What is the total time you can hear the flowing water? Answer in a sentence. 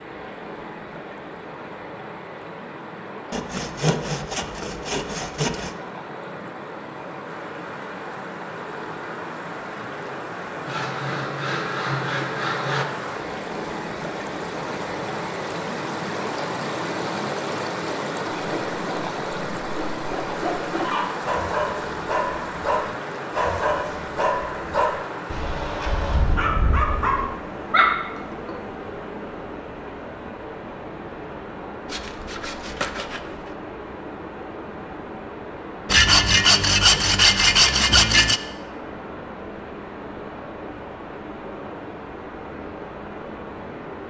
The flowing water can be heard for 44 seconds in total.